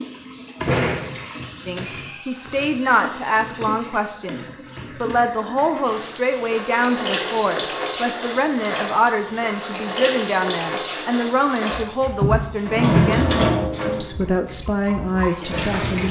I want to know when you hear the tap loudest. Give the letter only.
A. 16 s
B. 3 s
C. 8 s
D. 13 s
D.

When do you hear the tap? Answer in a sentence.
The tap can be heard from 0.0 to 16.0 s.